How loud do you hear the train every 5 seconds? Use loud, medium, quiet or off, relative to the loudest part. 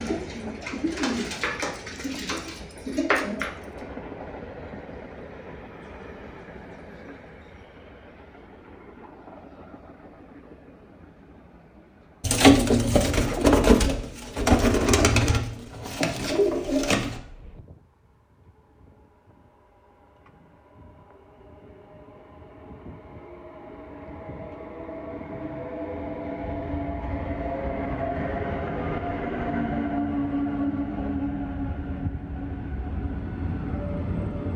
medium, quiet, quiet, quiet, quiet, loud, loud.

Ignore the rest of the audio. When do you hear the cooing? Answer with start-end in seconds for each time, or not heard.
0.0-3.9, 12.2-17.2.